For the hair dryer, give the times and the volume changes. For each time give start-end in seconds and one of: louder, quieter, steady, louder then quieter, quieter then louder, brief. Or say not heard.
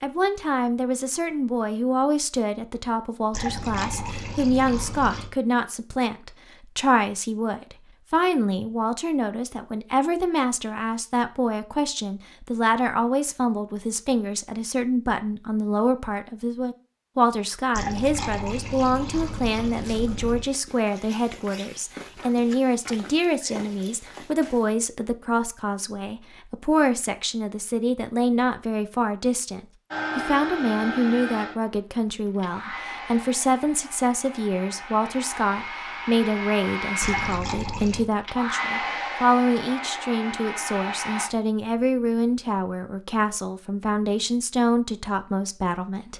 29.9-41.3 quieter then louder.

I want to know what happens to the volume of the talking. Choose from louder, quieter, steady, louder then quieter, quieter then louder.
steady.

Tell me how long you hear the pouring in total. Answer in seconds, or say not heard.
6 s.